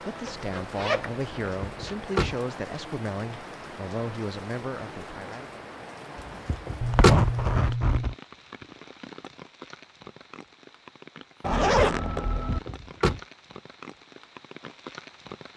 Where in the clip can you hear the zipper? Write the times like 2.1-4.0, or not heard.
0.2-1.9, 6.8-8.2, 11.4-12.6.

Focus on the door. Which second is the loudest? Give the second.
7 s.